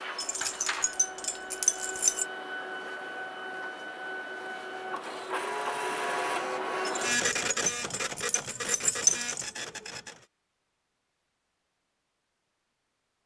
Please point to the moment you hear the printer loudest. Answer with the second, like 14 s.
7 s.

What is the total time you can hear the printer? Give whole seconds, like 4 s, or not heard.
10 s.